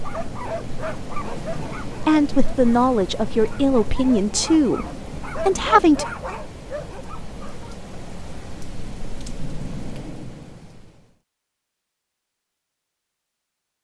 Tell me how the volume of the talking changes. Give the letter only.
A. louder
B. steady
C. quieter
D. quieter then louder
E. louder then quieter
B.